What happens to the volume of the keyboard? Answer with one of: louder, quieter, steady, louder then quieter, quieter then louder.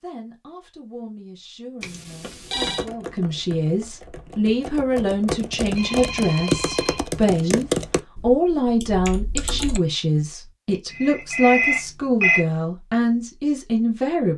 louder then quieter.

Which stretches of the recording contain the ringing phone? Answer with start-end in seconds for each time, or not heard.
1.8-2.9, 5.5-7.5, 10.9-12.4.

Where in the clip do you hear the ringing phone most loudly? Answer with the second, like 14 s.
12 s.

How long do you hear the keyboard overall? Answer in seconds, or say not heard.
7 s.